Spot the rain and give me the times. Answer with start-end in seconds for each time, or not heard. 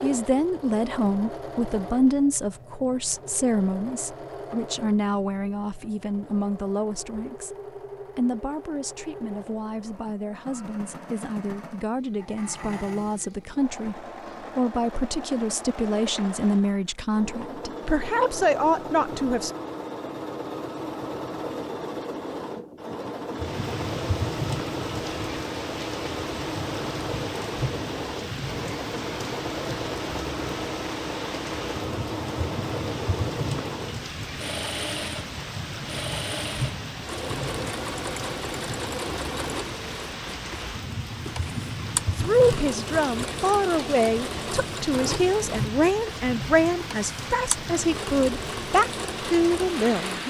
23.3-50.2.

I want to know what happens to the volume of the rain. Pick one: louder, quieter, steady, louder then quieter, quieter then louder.
steady.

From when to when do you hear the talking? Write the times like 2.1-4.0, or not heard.
0.0-7.5, 8.2-19.5, 42.1-50.2.